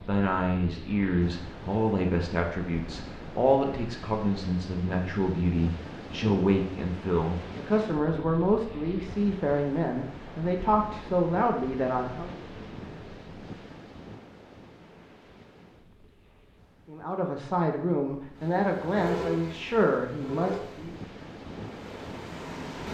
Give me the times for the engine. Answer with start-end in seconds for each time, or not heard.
18.4-22.9.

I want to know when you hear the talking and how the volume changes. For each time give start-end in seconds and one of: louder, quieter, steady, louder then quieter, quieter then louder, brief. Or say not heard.
0.1-12.3 steady
16.9-20.9 steady.